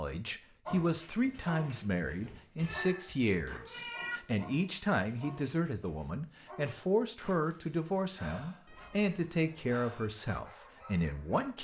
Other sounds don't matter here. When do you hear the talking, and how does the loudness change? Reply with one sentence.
You can hear the talking from 0.0 to 11.5 s, at a steady volume.